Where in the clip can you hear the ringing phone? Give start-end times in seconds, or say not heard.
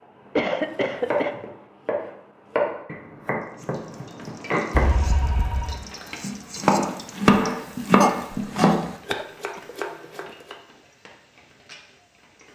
4.7-5.8.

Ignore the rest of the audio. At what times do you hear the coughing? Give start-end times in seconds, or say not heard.
0.3-1.4, 8.0-9.6.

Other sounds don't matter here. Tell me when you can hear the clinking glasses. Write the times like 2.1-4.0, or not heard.
not heard.